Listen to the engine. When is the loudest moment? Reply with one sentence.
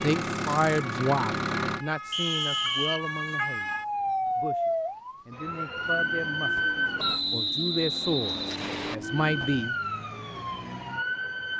The loudest moment of the engine is at 1 second.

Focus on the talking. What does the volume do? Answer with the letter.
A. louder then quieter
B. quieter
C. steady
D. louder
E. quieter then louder
E.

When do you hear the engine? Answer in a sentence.
The engine can be heard from 0.0 to 1.9 s and from 5.8 to 9.7 s.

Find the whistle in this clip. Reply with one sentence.
The whistle can be heard from 2.1 to 3.0 s and from 7.0 to 8.9 s.